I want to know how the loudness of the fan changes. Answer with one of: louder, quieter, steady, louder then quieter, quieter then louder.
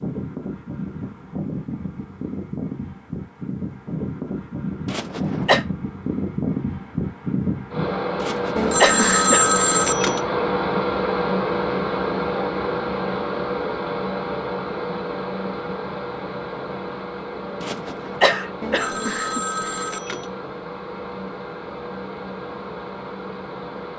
louder then quieter.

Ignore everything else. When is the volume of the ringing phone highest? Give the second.
9 s.